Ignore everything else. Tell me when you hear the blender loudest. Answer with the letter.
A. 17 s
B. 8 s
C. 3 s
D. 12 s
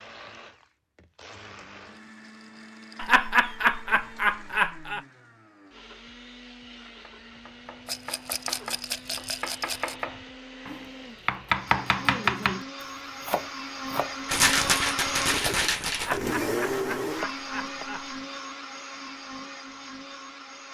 A.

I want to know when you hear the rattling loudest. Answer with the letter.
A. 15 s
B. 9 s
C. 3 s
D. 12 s
A.